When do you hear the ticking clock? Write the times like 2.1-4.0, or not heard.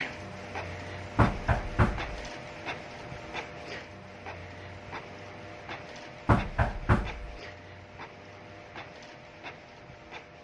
not heard.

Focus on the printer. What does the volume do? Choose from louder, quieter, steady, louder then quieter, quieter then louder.
quieter.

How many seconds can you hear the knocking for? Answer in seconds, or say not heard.
2 s.